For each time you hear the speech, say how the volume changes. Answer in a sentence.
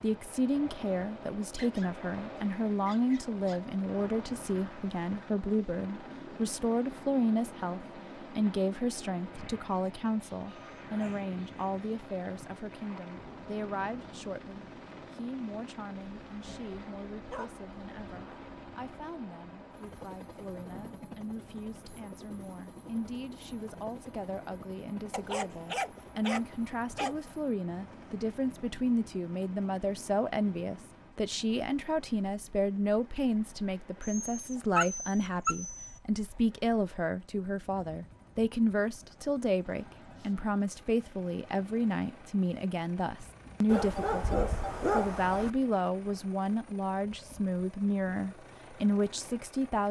You can hear the speech from 0.0 to 49.8 s, getting quieter then louder.